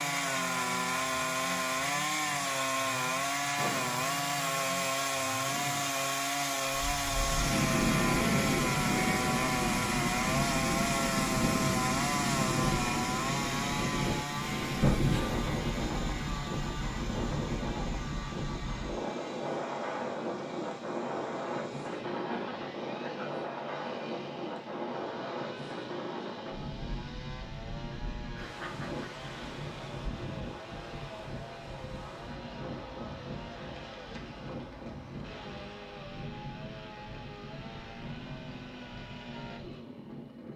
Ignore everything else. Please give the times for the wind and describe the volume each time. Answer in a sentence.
The wind can be heard from 6.8 to 40.5 s, getting quieter.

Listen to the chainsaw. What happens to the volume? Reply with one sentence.
The loudness of the chainsaw goes down.